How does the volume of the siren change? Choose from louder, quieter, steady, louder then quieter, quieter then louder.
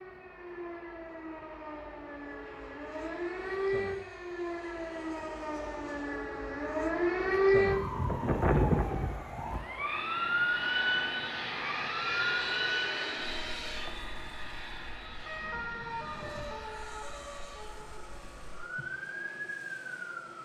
louder then quieter.